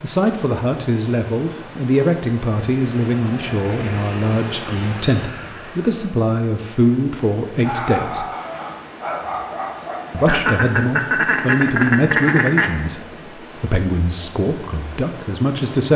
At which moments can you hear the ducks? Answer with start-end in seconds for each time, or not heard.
10.2-12.9.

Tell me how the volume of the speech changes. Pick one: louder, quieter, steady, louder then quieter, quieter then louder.
steady.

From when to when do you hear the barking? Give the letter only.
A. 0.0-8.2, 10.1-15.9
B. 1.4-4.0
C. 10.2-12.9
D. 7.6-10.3
D.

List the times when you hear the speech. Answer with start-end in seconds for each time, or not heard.
0.0-8.2, 10.1-15.9.